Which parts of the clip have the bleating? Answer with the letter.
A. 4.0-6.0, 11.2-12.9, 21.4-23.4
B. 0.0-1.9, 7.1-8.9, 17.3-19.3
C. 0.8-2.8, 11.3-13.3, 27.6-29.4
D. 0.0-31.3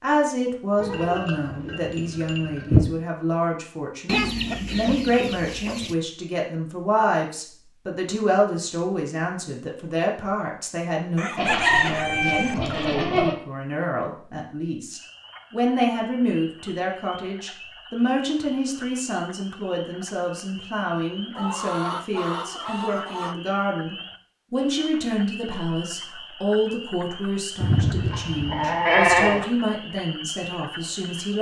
C.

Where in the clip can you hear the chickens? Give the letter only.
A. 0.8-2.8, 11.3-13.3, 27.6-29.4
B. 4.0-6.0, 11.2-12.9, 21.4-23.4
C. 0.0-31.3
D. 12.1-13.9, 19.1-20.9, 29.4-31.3
B.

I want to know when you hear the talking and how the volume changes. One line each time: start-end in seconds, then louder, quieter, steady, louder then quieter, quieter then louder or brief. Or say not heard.
0.0-31.3 steady.